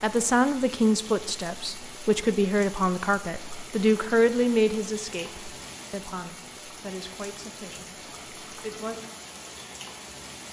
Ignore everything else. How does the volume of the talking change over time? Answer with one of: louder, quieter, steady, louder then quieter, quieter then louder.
quieter.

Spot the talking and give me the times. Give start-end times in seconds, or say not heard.
0.0-8.9.